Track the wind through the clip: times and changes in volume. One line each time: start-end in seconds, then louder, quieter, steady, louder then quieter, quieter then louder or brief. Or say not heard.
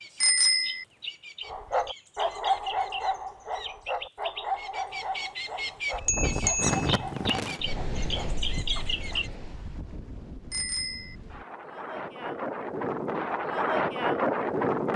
6.0-14.9 quieter then louder.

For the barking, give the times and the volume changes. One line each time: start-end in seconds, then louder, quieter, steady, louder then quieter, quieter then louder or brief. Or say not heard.
1.4-9.2 quieter.